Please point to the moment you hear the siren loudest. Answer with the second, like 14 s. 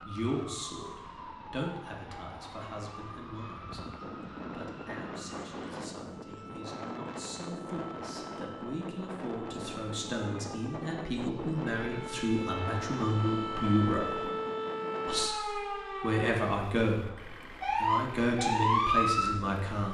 19 s.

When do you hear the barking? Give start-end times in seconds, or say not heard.
not heard.